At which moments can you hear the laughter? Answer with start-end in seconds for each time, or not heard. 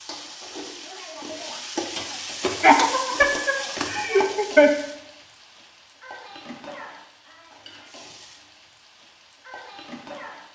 2.5-4.7.